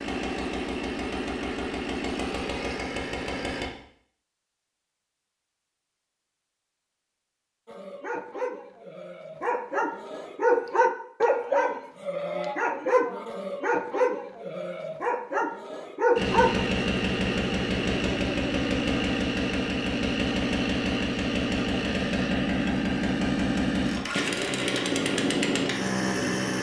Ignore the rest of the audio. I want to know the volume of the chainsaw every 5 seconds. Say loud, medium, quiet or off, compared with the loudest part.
medium, off, off, loud, loud, loud.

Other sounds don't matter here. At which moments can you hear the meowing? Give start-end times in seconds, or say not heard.
not heard.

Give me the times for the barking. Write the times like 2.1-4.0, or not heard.
7.7-16.6.